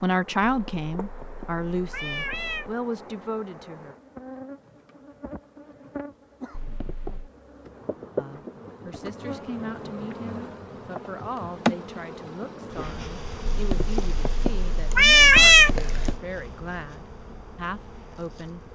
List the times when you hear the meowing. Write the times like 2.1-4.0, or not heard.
0.5-2.8, 6.5-7.3, 13.4-16.2.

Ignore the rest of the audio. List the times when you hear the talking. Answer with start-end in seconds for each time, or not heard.
0.0-4.0, 8.2-18.7.